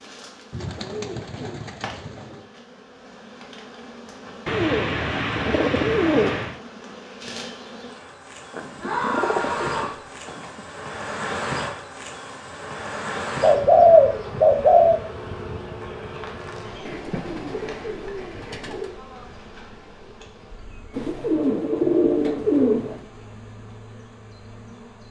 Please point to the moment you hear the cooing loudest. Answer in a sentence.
The volume of the cooing peaks at 14 seconds.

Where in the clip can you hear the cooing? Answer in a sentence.
You can hear the cooing from 0.5 to 2.4 s, from 4.5 to 6.5 s, from 8.5 to 10.6 s, from 13.4 to 15.0 s, from 16.9 to 18.9 s and from 20.9 to 23.1 s.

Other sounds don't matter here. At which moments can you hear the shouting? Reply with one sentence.
You can hear the shouting from 8.8 to 10.0 s.